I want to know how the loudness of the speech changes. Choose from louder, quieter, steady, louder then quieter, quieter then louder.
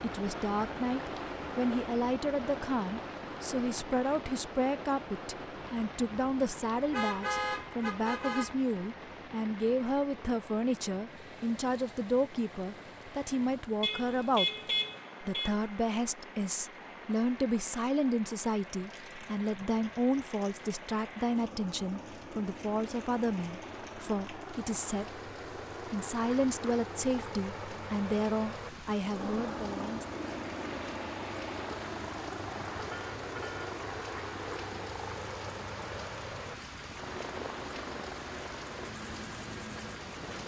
steady.